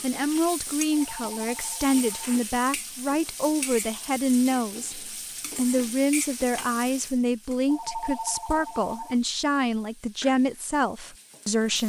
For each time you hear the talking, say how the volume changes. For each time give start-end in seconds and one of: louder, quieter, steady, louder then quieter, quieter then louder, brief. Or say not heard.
0.0-11.8 steady.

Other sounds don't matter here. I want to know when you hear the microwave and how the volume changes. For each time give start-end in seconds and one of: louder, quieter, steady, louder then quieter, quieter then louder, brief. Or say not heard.
not heard.